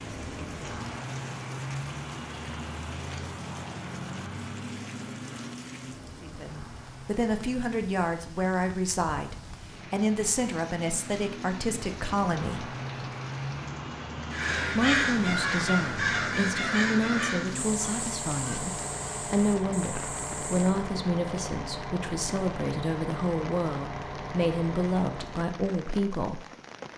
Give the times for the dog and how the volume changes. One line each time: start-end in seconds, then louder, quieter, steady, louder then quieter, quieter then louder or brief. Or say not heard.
not heard.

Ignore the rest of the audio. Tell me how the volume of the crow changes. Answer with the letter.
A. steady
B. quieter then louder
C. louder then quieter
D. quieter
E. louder
D.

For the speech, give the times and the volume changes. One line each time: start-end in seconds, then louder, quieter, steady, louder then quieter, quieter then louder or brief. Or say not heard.
6.2-12.7 steady
14.8-26.4 steady.